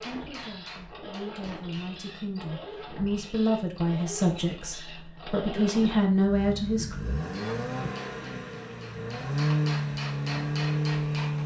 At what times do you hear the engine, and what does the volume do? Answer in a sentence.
The engine can be heard from 0.0 to 11.4 s, getting louder.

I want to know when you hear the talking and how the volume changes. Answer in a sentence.
The talking can be heard from 0.0 to 7.0 s, getting louder.